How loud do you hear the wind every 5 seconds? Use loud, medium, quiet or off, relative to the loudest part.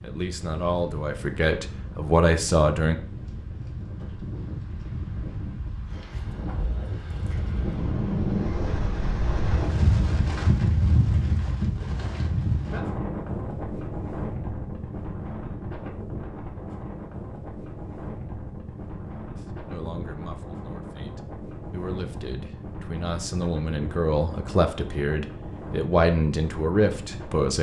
medium, loud, loud, medium, medium, medium.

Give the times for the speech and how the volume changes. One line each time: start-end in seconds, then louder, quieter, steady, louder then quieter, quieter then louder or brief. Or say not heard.
0.0-3.0 brief
19.4-27.5 louder.